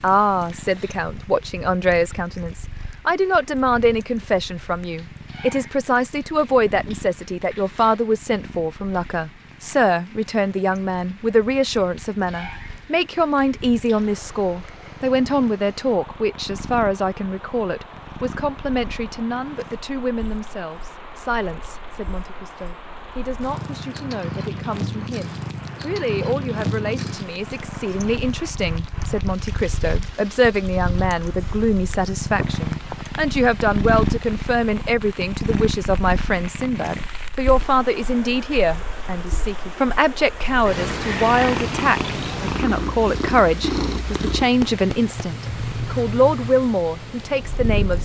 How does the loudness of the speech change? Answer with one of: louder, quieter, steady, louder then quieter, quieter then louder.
quieter then louder.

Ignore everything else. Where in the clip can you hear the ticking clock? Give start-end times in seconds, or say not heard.
not heard.